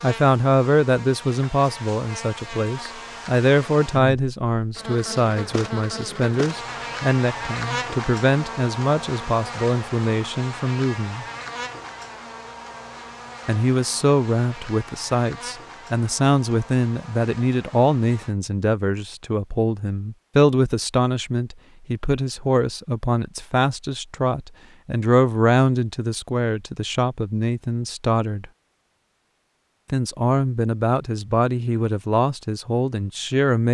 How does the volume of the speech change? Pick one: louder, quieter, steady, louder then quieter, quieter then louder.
steady.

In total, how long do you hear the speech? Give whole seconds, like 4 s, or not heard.
30 s.